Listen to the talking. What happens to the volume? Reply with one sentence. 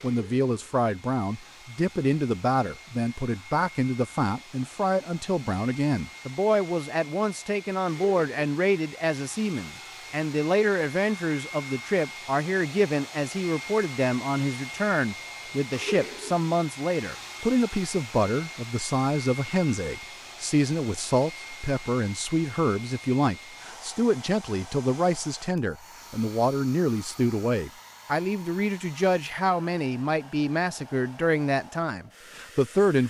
The loudness of the talking stays about the same.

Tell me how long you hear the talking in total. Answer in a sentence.
You can hear the talking for 33 seconds altogether.